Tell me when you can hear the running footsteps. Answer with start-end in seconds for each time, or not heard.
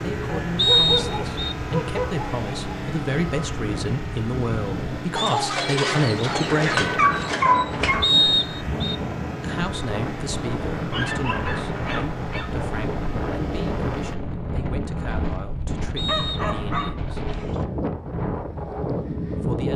not heard.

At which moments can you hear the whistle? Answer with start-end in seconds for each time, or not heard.
0.6-1.6, 8.0-8.9, 15.9-16.9.